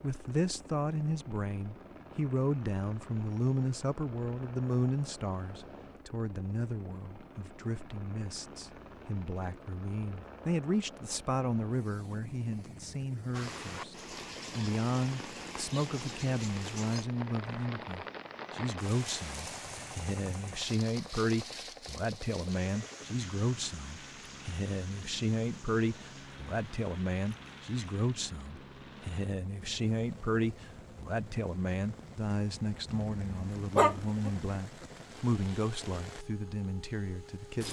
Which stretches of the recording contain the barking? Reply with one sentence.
The barking can be heard from 32.9 to 34.5 s.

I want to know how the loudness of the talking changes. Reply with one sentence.
The volume of the talking stays about the same.